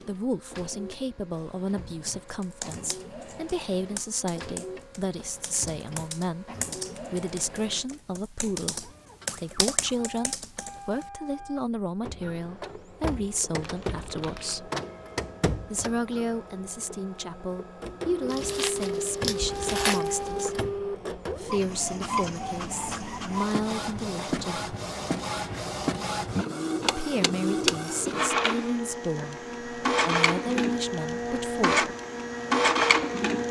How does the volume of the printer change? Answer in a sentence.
The volume of the printer goes up.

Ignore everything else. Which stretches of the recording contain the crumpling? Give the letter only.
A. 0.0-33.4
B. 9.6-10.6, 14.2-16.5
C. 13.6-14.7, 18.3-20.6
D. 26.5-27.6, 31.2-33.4
C.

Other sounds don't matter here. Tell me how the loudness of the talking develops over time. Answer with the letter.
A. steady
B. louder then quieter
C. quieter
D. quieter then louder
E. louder
A.